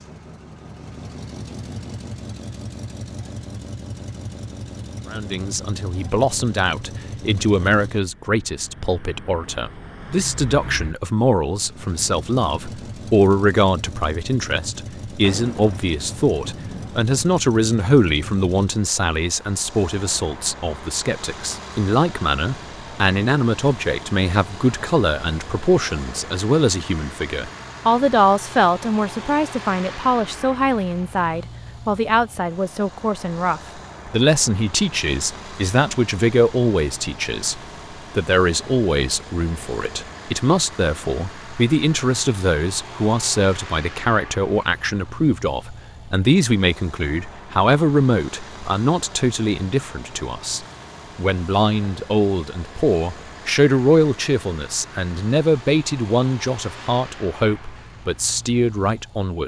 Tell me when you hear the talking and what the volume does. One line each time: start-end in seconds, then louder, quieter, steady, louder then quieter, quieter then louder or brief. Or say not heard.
5.1-59.4 steady.